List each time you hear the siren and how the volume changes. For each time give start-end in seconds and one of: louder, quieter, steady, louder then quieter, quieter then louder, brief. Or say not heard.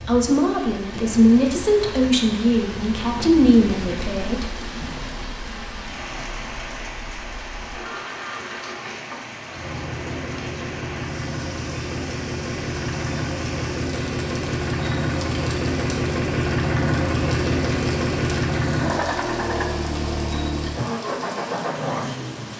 not heard.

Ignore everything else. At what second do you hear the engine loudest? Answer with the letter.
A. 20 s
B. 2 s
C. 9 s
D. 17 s
D.